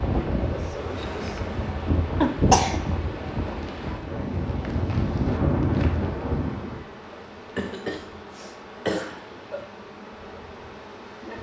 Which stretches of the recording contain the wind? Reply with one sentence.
The wind can be heard from 0.0 to 6.8 s.